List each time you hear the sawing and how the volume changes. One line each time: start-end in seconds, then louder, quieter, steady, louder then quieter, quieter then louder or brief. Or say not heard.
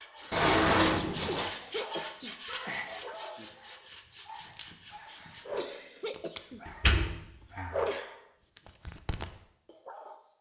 0.0-5.5 quieter.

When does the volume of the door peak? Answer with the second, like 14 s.
1 s.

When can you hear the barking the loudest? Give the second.
8 s.